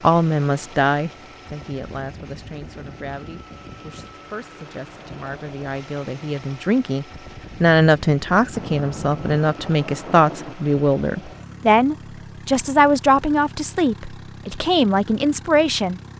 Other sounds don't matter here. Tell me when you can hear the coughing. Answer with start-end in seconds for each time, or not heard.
not heard.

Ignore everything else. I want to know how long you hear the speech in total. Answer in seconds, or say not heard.
16 s.